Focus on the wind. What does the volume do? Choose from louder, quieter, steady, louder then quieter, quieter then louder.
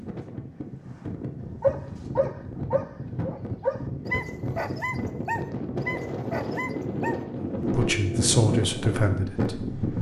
louder.